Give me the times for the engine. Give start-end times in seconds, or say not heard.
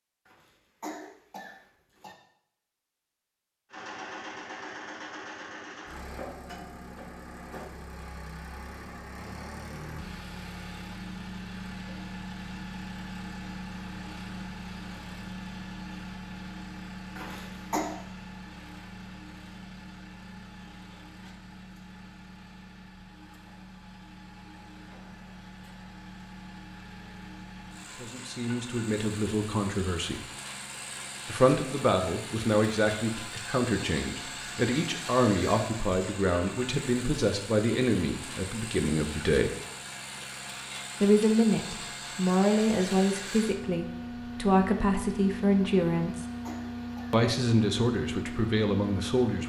3.7-49.4.